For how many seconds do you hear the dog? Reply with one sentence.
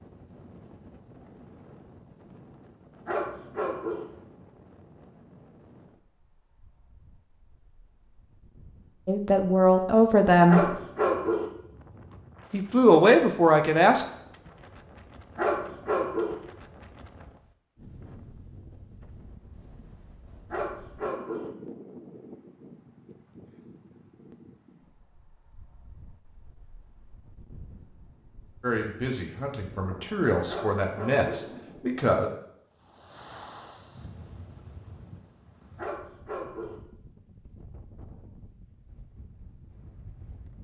The dog can be heard for 6 seconds in total.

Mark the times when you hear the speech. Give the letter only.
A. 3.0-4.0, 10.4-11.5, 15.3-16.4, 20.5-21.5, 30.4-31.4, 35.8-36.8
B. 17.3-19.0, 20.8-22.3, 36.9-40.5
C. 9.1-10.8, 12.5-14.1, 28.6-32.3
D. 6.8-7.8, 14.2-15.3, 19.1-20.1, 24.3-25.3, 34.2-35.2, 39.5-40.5
C.